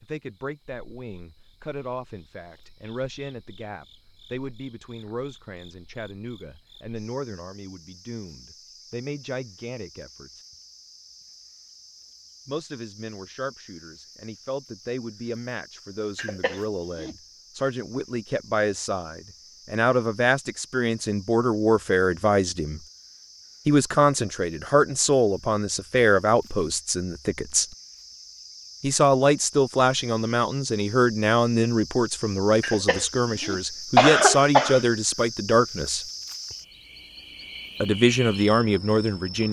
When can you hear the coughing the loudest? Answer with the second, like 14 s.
34 s.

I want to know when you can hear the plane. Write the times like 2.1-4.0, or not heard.
not heard.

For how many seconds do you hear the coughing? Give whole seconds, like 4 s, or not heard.
3 s.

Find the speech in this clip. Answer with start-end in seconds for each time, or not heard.
0.0-10.4, 12.4-22.8, 23.6-27.6, 28.8-36.0, 37.8-39.4.